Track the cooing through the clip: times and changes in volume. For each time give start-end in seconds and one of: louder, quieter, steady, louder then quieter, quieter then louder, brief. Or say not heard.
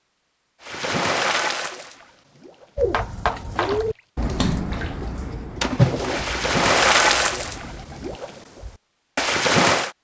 2.8-8.2 quieter.